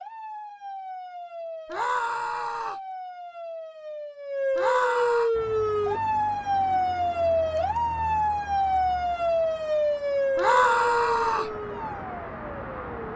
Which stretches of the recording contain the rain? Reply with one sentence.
The rain can't be heard in this clip.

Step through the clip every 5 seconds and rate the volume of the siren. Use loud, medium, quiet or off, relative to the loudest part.
medium, loud, medium.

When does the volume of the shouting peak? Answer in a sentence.
The volume of the shouting peaks at 11 seconds.